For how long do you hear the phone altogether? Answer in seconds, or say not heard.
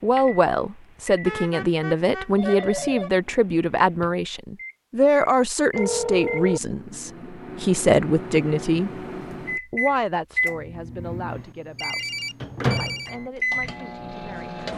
4 s.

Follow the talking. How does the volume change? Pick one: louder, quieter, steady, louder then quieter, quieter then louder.
quieter.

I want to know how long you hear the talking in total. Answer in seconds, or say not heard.
14 s.